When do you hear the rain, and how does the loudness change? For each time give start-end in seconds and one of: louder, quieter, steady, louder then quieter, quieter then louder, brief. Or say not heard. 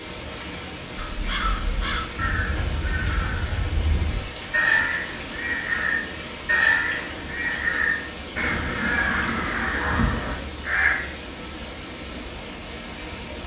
0.0-13.4 steady.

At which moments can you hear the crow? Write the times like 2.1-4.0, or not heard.
0.9-11.1.